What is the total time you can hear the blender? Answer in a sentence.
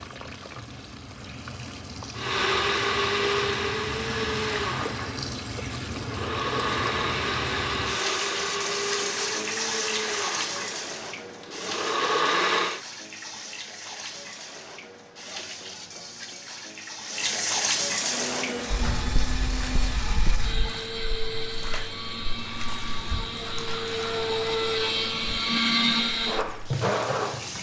The blender can be heard for 20 seconds in total.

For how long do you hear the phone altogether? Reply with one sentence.
The phone can be heard for 2 seconds in total.